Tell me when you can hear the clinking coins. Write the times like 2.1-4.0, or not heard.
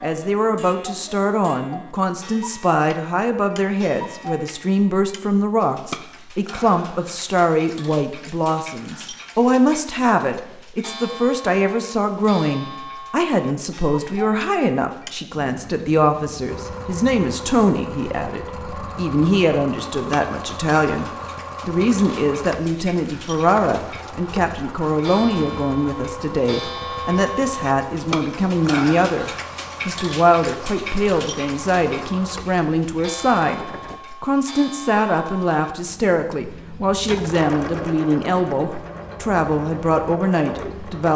not heard.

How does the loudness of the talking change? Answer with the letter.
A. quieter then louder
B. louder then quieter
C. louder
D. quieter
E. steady
E.